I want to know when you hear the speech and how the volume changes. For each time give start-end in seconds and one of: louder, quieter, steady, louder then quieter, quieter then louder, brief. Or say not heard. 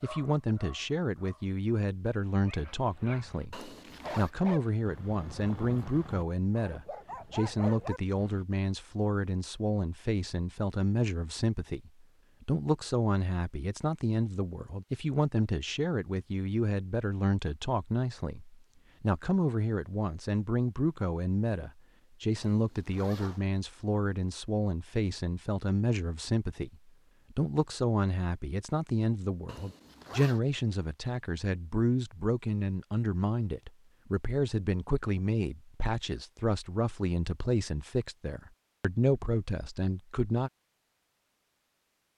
0.0-40.5 steady.